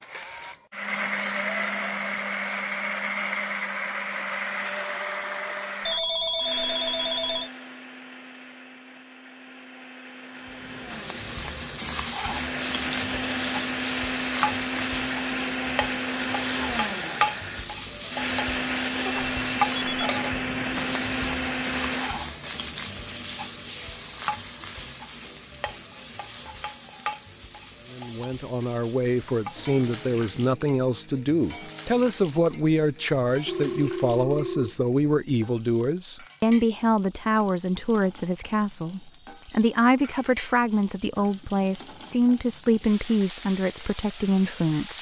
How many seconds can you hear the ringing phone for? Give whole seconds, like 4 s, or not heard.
4 s.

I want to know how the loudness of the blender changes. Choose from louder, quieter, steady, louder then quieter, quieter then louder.
quieter then louder.